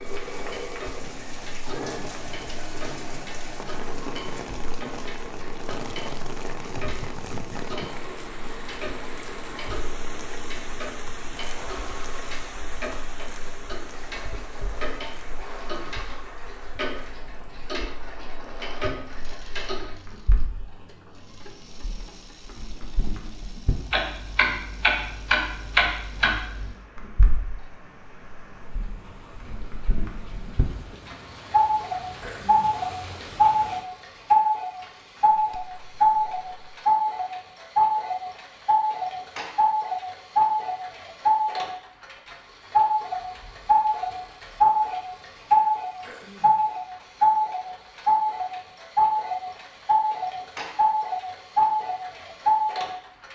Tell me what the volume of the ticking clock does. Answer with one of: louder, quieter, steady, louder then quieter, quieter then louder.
louder.